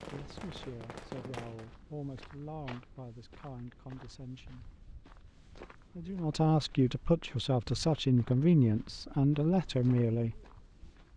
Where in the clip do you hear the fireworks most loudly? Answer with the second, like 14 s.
1 s.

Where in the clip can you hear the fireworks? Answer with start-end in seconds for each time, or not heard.
0.0-1.7.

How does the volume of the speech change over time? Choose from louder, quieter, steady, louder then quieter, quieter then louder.
louder.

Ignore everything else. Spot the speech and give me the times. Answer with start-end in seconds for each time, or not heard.
0.1-4.7, 5.7-10.4.